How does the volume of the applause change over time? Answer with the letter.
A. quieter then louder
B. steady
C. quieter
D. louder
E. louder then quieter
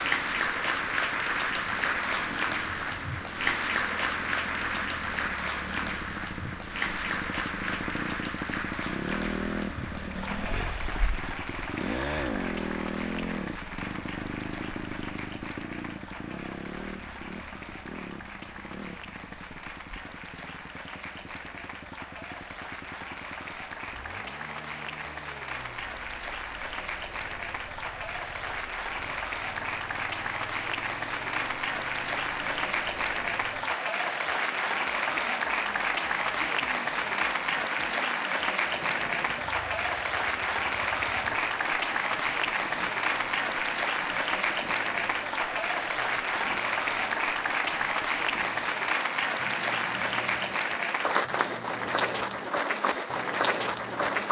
A.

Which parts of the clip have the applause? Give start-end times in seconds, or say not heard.
0.0-54.2.